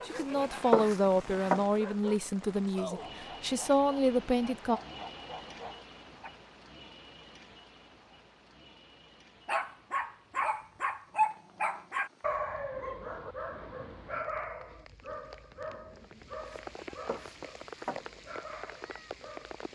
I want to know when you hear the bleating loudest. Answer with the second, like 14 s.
1 s.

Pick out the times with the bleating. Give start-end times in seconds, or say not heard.
0.1-1.6, 16.4-18.0.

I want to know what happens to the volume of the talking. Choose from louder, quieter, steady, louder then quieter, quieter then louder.
quieter then louder.